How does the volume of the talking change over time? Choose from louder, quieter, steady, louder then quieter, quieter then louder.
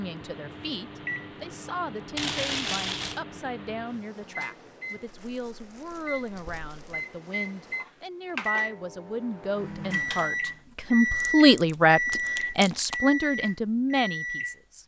louder.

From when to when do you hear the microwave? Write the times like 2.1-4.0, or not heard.
0.0-14.8.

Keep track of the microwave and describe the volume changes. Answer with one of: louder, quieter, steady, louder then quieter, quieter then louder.
louder.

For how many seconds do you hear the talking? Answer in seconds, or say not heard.
15 s.